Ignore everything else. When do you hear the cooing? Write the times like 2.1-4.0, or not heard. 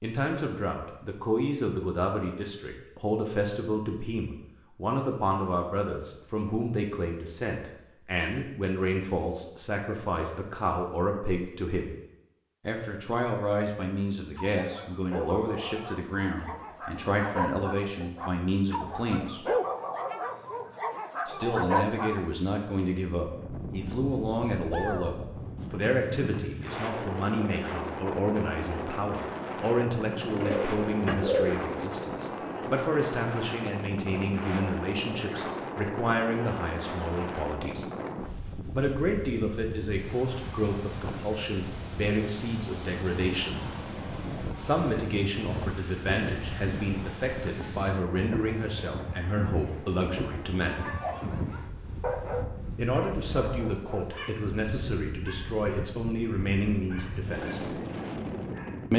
30.4-31.9.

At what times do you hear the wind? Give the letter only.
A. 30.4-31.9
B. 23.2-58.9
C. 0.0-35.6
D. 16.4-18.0
B.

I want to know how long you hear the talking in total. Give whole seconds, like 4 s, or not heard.
52 s.